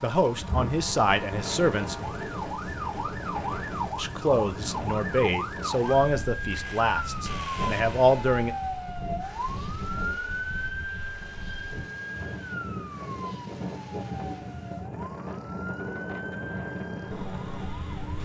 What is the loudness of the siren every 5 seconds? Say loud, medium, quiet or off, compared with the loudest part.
loud, loud, loud, medium.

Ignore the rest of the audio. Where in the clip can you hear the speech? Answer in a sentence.
The speech can be heard from 0.0 to 2.0 s and from 4.0 to 8.5 s.